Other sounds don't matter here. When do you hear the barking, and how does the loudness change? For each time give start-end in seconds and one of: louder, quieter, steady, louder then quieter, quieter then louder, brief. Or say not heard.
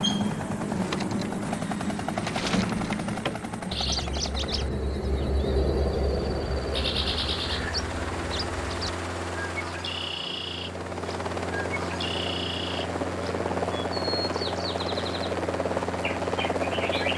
not heard.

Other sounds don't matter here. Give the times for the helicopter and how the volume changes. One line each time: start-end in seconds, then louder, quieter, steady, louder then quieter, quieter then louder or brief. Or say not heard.
0.0-17.1 quieter then louder.